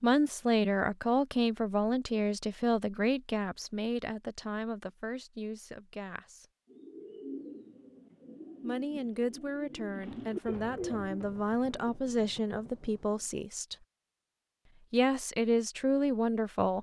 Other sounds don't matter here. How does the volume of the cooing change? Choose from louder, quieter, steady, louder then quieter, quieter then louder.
quieter then louder.